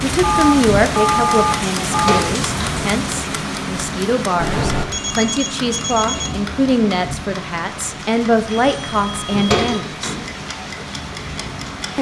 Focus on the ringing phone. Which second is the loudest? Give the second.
1 s.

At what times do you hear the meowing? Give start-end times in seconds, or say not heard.
not heard.